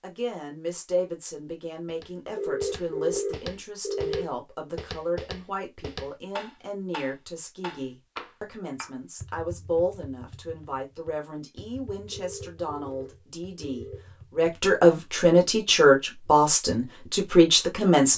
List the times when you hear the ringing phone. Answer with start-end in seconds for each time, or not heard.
2.4-4.3, 12.1-14.1.